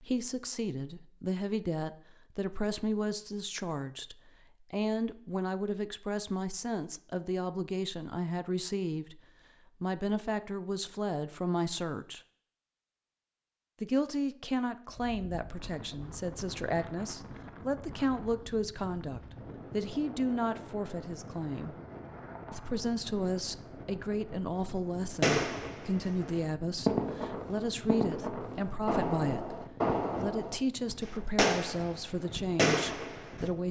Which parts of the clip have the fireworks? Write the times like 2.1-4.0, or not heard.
25.1-33.5.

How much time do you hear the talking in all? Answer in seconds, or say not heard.
31 s.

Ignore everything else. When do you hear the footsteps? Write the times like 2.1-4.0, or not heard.
not heard.